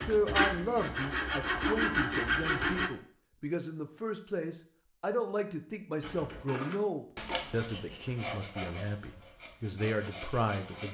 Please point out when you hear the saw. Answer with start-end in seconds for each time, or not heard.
0.0-2.9, 6.0-10.8.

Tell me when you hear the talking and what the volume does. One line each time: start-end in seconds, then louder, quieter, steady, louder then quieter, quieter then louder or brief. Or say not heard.
0.1-10.8 steady.